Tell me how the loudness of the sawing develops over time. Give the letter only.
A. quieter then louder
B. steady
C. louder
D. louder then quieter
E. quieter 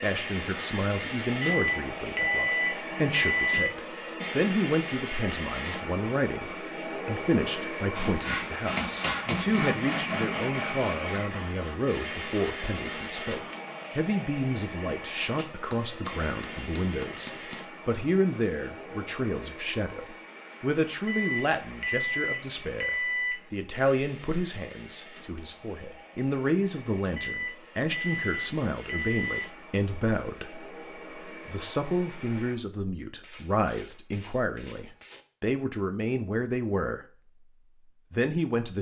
E.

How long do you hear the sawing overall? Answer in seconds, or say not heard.
6 s.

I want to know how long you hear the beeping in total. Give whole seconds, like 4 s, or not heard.
7 s.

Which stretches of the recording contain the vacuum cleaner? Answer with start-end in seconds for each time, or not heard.
0.0-32.5.